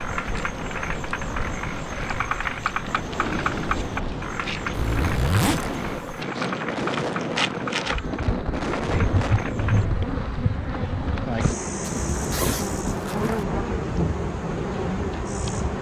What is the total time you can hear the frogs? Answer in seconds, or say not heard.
10 s.